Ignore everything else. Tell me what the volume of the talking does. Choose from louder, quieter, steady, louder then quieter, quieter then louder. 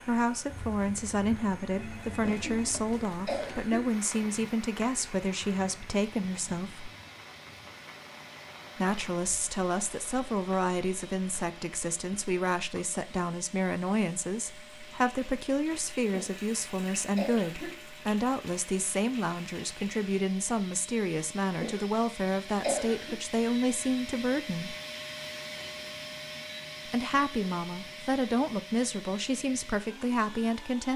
steady.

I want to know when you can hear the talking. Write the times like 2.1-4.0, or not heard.
0.1-6.9, 8.8-24.8, 26.9-30.9.